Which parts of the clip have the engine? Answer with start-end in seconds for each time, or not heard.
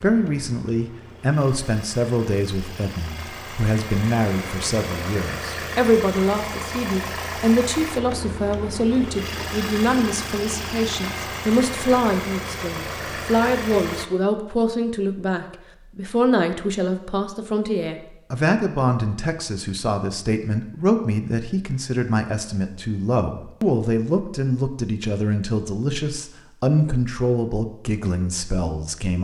0.0-14.1.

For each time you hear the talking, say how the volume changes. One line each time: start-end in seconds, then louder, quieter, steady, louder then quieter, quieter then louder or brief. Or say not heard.
0.0-29.1 steady.